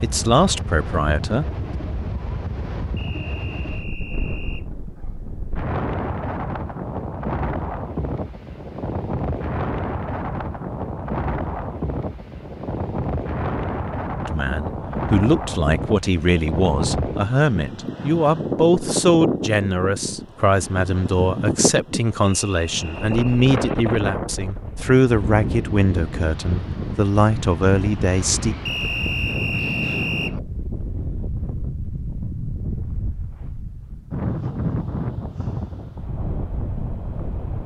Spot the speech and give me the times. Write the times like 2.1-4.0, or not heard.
0.0-1.4, 14.2-28.6.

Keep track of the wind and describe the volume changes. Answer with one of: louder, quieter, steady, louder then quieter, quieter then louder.
steady.